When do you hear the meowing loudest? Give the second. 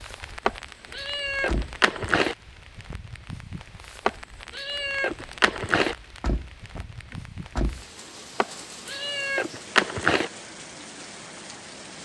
10 s.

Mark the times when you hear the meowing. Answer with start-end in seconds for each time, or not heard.
0.5-2.4, 4.0-6.0, 8.4-10.3.